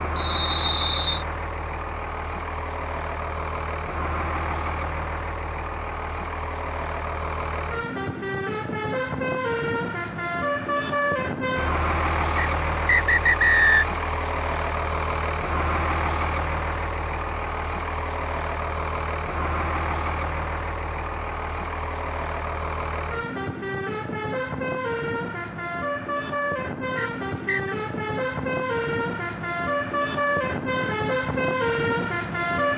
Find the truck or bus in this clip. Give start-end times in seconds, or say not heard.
0.0-32.7.